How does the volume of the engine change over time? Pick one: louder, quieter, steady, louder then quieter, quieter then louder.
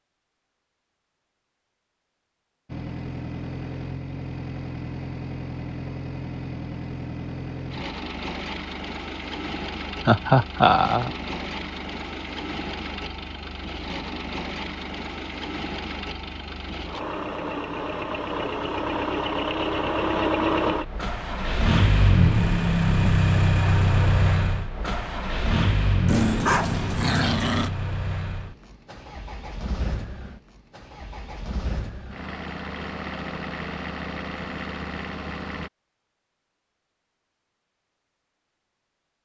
louder then quieter.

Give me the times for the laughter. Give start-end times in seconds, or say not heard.
10.1-11.1.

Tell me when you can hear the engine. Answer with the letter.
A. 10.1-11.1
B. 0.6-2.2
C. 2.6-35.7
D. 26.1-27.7
C.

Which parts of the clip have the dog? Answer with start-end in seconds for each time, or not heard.
26.1-27.7.